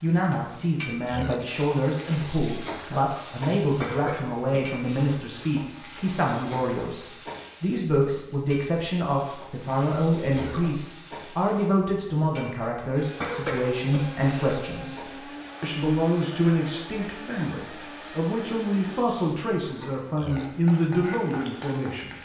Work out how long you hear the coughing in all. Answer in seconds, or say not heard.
3 s.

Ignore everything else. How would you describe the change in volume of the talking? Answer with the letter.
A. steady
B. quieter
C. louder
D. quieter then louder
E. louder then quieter
A.